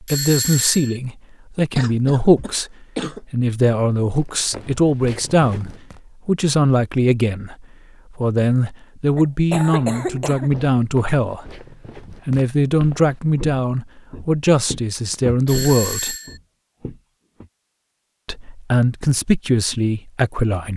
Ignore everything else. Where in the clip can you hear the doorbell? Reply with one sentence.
The doorbell can be heard from 0.1 to 1.0 s and from 15.4 to 16.4 s.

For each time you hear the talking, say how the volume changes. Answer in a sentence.
You can hear the talking from 0.0 to 16.1 s, at a steady volume; and briefly from 18.2 to 20.7 s.